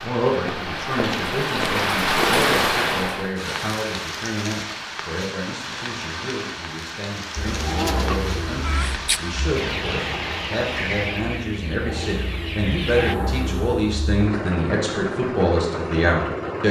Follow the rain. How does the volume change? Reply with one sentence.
The loudness of the rain goes down.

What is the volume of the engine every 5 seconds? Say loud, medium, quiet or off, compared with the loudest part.
off, loud, loud, loud.